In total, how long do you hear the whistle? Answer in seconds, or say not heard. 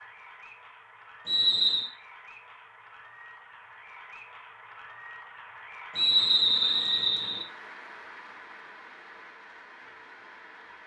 2 s.